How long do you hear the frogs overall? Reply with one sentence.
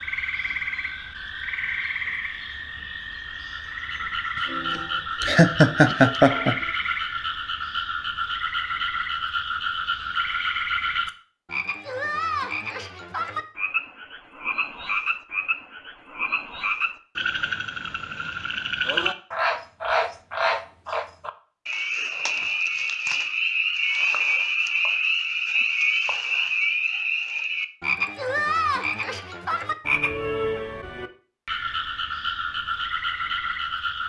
You can hear the frogs for 34 seconds altogether.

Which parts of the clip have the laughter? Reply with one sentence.
You can hear the laughter from 4.5 to 6.5 s.